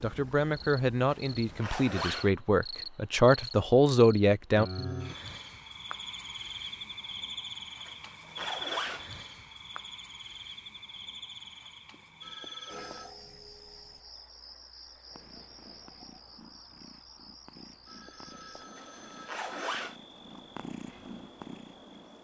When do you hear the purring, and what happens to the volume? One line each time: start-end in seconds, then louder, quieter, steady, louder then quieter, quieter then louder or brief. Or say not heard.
15.1-22.1 louder.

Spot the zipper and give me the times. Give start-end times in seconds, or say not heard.
1.1-2.3, 7.8-9.1, 18.8-19.9.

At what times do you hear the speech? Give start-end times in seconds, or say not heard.
0.0-4.7.